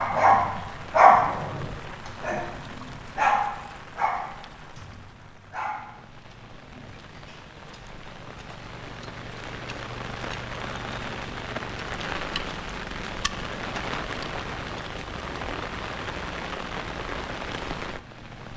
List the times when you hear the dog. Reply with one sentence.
The dog can be heard from 0.0 to 7.4 s.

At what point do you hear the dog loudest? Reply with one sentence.
The volume of the dog peaks at 1 second.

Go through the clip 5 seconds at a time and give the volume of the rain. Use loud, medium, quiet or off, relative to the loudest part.
medium, medium, loud, loud.